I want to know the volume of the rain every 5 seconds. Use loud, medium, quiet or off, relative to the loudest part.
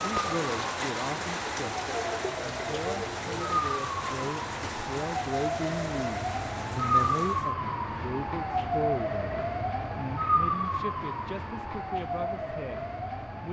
loud, medium, off.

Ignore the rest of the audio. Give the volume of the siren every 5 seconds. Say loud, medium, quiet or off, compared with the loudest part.
medium, loud, loud.